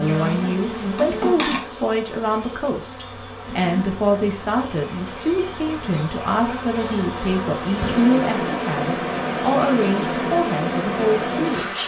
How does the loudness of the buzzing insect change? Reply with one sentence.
The loudness of the buzzing insect goes down, then up.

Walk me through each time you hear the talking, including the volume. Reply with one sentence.
The talking can be heard from 0.0 to 11.8 s, at a steady volume.